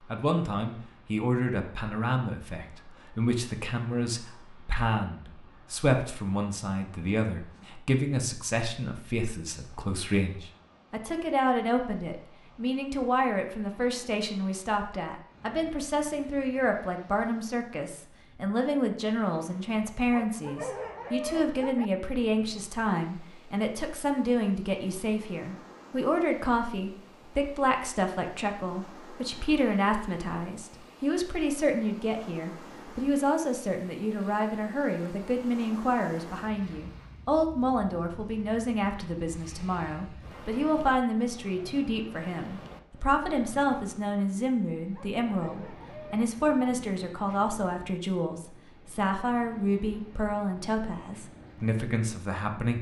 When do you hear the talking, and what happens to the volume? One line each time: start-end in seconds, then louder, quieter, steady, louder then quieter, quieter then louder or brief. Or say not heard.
0.1-52.7 steady.